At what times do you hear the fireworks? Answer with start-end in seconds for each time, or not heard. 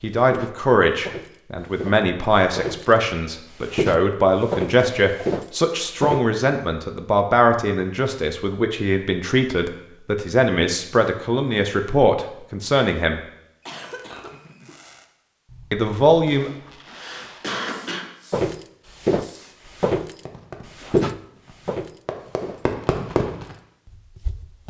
13.9-23.6.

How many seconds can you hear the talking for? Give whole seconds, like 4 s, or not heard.
14 s.